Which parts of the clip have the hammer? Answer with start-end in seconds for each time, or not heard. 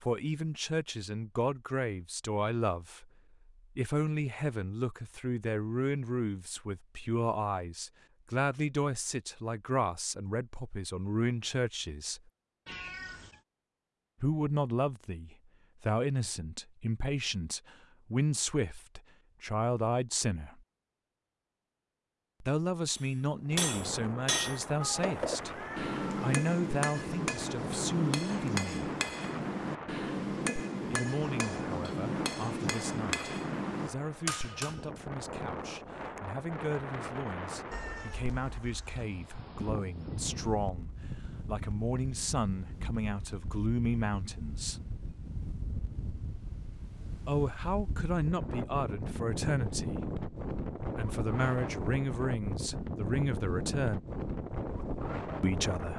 22.9-34.9.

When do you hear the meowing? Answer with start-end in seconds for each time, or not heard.
12.7-13.4, 24.8-26.2, 37.7-39.0.